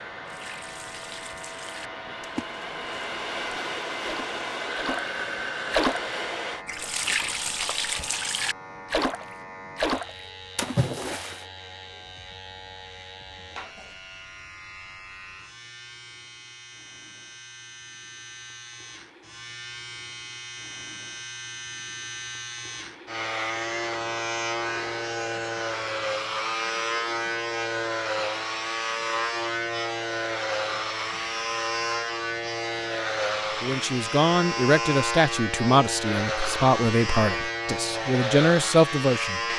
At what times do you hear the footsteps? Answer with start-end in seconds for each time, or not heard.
not heard.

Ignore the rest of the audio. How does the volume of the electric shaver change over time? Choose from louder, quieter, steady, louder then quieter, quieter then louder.
louder.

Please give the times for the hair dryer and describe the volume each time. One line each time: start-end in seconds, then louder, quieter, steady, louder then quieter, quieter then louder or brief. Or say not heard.
0.0-6.7 louder.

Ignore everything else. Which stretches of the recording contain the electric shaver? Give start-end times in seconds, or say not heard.
0.0-39.5.